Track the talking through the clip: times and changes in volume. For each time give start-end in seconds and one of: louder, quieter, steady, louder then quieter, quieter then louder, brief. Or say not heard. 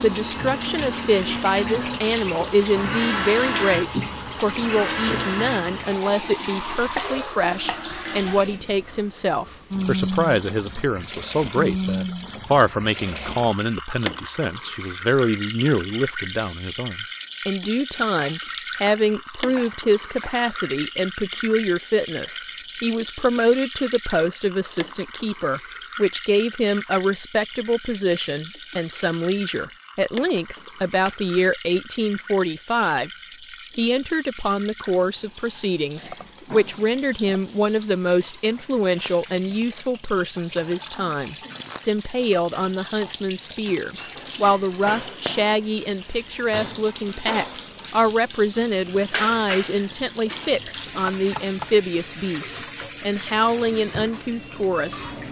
0.0-33.1 steady
33.8-55.0 steady.